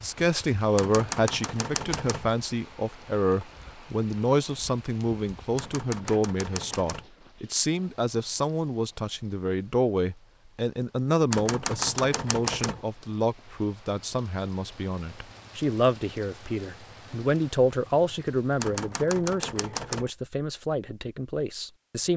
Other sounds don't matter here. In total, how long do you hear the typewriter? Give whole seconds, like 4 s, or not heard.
6 s.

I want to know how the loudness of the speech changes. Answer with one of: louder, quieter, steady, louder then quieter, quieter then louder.
steady.